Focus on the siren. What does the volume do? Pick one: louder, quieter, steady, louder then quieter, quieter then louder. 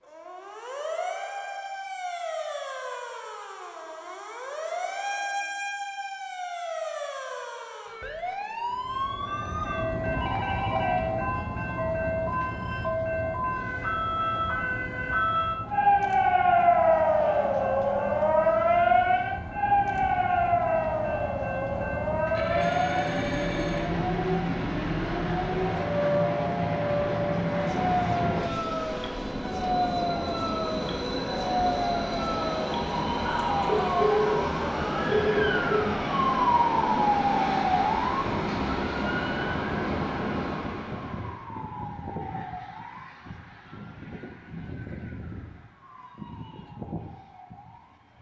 louder then quieter.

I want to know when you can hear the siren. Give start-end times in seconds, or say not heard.
0.0-48.1.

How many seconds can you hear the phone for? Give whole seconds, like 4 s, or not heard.
5 s.